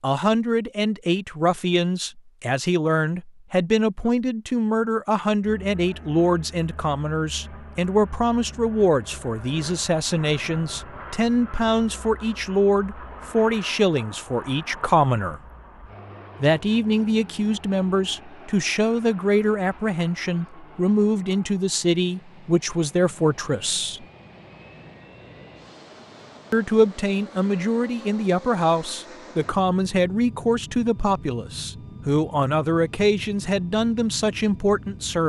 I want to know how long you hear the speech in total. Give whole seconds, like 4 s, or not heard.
32 s.